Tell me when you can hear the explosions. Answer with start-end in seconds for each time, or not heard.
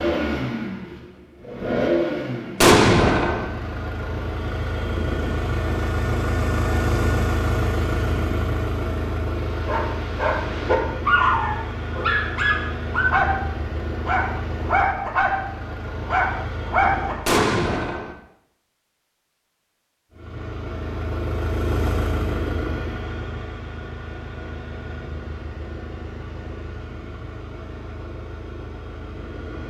2.6-3.5, 17.2-18.1.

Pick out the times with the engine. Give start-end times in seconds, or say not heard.
0.0-17.3, 20.1-29.6.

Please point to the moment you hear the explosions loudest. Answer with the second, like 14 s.
3 s.